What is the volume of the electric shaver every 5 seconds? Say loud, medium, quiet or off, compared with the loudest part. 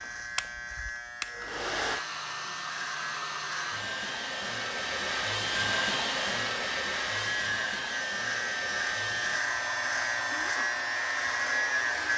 medium, loud, loud.